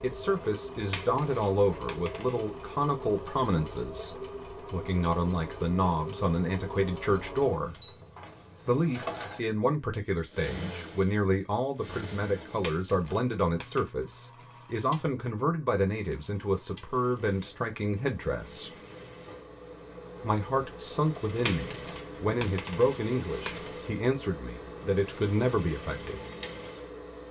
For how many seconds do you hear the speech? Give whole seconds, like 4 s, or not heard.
24 s.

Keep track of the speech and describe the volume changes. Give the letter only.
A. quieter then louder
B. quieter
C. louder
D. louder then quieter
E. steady
E.